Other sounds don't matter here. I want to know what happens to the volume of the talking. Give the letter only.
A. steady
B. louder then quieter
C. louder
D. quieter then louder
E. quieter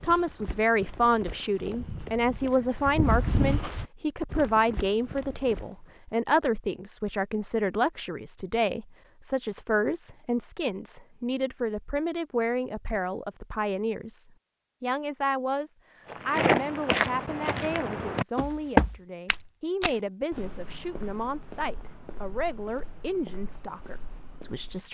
E.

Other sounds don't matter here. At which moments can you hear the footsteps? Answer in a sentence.
The footsteps can be heard from 0.0 to 5.9 s and from 16.1 to 24.8 s.